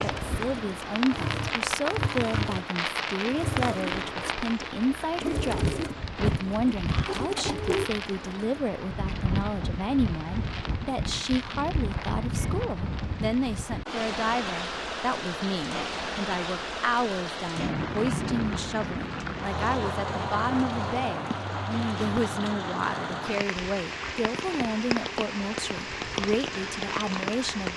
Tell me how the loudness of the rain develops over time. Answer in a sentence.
The volume of the rain stays about the same.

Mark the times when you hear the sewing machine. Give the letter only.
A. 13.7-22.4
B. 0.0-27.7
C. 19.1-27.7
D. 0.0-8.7
D.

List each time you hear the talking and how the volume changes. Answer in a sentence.
The talking can be heard from 0.0 to 27.7 s, at a steady volume.